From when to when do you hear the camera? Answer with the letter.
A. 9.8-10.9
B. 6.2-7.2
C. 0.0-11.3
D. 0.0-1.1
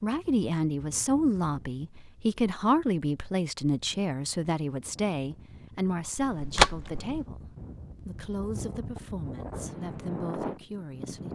B.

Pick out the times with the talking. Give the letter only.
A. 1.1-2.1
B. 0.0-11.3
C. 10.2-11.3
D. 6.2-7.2
B.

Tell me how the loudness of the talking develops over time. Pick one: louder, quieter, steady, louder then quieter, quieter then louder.
quieter.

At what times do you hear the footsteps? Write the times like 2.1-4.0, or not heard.
not heard.